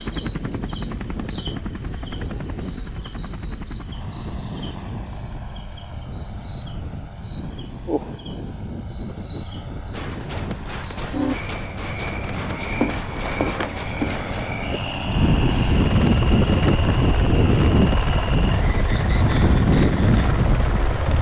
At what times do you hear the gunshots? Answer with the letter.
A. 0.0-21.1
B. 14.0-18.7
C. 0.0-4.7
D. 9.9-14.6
D.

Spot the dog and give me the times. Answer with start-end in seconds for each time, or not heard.
not heard.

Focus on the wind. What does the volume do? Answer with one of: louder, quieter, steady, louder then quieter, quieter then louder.
louder.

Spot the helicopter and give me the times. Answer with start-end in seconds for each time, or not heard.
0.0-21.1.